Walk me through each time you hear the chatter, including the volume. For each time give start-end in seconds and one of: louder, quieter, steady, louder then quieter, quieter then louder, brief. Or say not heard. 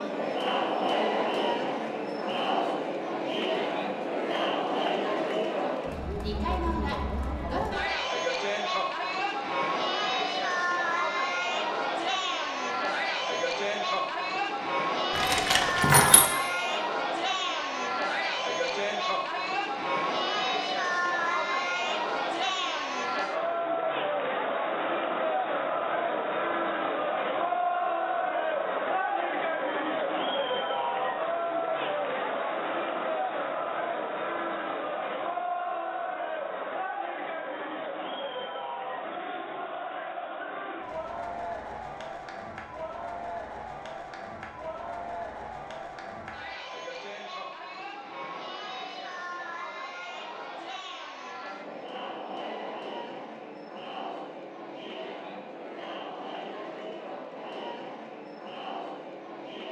0.0-59.6 quieter.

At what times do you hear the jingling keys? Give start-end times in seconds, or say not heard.
15.2-16.3.